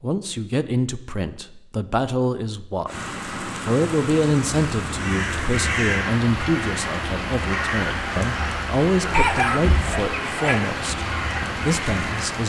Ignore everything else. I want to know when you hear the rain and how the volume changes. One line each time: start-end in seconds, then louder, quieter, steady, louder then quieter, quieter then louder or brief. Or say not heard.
2.9-12.4 steady.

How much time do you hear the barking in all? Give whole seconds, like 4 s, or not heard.
2 s.